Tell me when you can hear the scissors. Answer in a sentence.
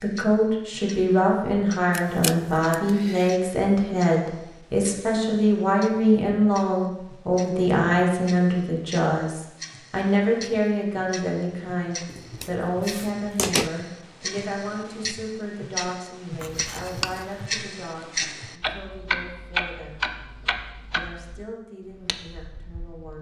You can hear the scissors from 1.9 to 3.3 s, from 12.1 to 13.7 s and from 16.4 to 17.3 s.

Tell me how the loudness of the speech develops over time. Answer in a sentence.
The loudness of the speech goes down.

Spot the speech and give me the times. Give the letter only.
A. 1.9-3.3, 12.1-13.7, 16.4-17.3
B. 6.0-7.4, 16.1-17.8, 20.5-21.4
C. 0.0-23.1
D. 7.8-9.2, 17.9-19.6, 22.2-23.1
C.